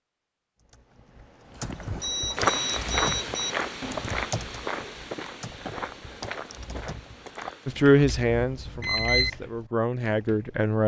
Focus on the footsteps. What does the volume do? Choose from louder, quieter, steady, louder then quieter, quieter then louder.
quieter.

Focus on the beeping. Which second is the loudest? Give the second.
9 s.